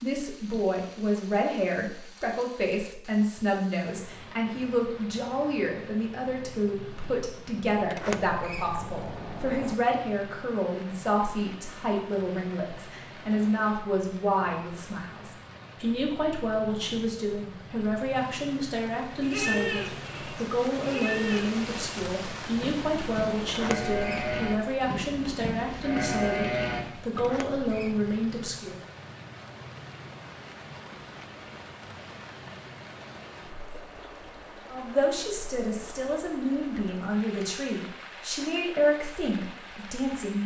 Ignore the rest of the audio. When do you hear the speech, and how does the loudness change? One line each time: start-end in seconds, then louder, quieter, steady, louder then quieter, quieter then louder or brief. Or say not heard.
0.0-28.8 steady
34.7-40.4 louder then quieter.